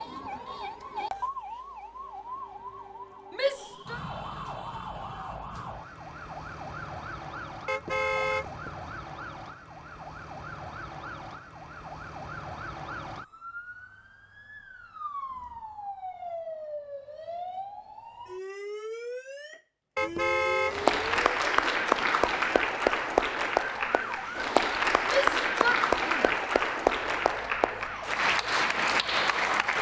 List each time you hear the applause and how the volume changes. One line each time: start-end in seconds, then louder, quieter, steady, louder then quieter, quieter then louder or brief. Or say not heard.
20.6-29.7 steady.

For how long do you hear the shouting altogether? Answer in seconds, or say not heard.
2 s.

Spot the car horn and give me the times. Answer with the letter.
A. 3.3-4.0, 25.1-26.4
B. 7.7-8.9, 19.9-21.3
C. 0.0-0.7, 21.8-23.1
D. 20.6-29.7
B.